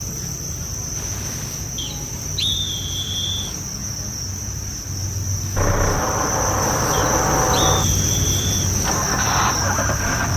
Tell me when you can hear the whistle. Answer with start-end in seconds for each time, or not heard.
1.8-3.5, 6.9-8.7.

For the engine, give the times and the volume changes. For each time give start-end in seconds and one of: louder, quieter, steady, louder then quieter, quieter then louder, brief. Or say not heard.
5.5-10.3 quieter then louder.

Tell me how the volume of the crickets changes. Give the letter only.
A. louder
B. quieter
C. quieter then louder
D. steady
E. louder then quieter
A.